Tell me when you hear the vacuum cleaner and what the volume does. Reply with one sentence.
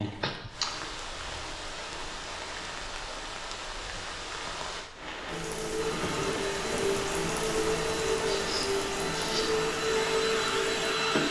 The vacuum cleaner can be heard from 5.8 to 11.2 s, getting louder.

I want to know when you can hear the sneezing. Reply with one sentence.
The sneezing can be heard from 0.2 to 0.8 s and from 8.3 to 9.6 s.